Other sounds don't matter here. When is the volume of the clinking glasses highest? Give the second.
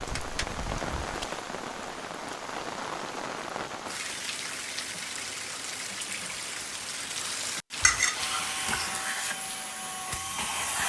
8 s.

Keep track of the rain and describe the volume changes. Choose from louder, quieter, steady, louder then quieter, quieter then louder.
steady.